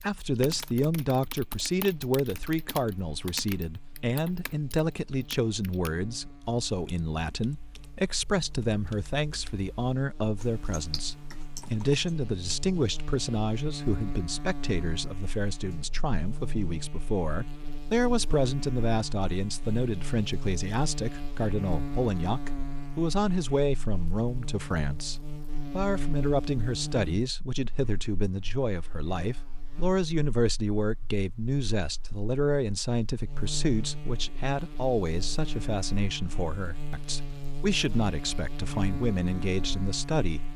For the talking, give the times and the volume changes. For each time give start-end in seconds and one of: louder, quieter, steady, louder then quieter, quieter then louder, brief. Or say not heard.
0.0-40.5 steady.